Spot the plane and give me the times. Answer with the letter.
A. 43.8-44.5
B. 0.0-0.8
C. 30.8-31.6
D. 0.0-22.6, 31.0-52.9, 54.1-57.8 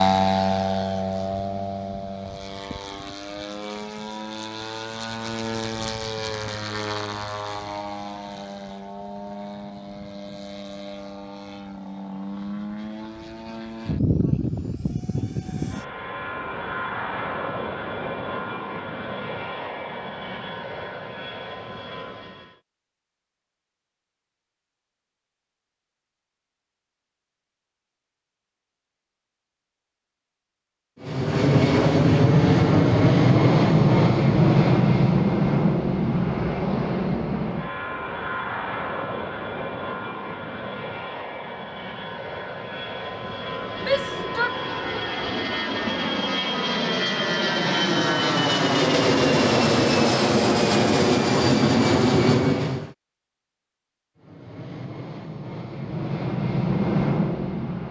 D.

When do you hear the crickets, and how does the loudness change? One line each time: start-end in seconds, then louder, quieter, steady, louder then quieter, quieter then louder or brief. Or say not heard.
not heard.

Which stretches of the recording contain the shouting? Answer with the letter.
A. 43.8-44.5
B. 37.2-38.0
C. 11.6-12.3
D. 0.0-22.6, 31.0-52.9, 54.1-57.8
A.